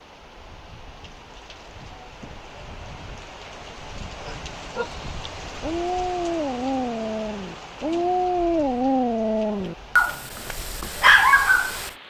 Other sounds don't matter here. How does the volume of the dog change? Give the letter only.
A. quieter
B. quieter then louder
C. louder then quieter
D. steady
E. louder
E.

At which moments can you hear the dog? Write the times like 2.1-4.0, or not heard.
4.2-11.9.